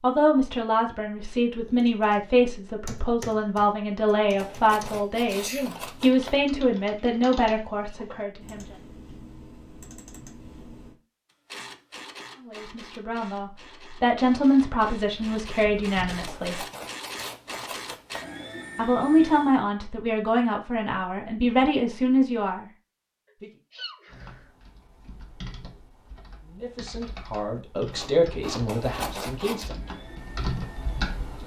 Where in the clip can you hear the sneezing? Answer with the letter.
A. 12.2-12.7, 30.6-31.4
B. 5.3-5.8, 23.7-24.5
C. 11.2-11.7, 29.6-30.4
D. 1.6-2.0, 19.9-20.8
B.